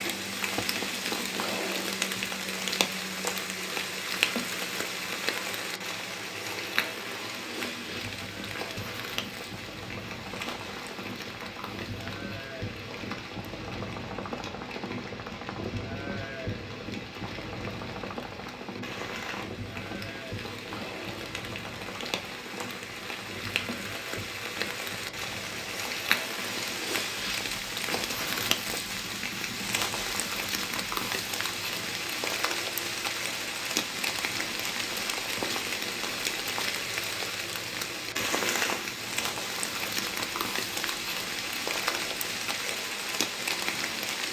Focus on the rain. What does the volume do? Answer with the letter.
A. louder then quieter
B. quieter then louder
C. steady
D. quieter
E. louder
B.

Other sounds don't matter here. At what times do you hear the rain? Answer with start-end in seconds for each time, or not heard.
0.0-44.2.